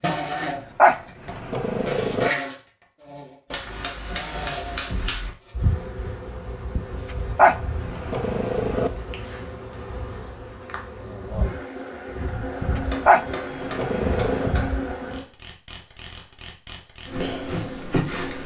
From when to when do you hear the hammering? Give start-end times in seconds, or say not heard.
3.5-5.3, 12.8-14.7.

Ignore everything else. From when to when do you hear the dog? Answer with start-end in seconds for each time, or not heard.
0.8-2.3, 7.3-8.9, 13.1-14.6.